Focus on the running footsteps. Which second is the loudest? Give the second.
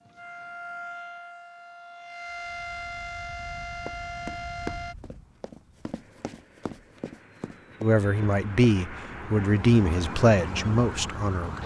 5 s.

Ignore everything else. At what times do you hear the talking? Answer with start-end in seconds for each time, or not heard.
7.8-11.6.